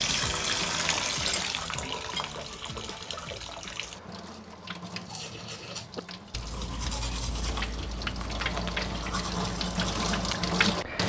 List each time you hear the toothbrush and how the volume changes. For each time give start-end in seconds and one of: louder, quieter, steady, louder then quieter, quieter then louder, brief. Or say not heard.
5.0-10.6 steady.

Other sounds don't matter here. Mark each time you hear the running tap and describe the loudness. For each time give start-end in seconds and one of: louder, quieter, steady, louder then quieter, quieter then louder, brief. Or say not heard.
0.0-11.0 quieter then louder.